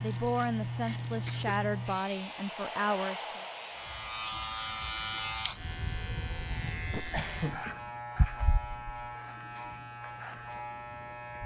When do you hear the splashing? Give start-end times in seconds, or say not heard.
not heard.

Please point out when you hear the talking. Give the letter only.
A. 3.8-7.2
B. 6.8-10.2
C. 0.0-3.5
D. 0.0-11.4
C.